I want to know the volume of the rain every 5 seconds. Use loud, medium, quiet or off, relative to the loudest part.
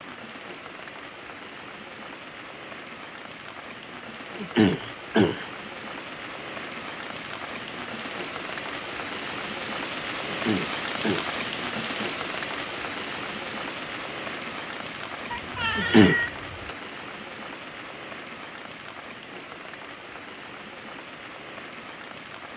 medium, loud, loud, medium, medium.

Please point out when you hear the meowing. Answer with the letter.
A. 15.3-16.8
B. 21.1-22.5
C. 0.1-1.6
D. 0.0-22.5
A.